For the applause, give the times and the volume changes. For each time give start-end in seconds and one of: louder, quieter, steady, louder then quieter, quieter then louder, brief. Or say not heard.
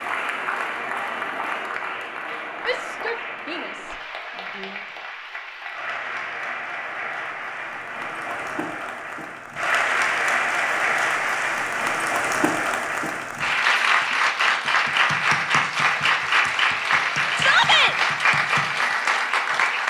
0.0-19.8 louder.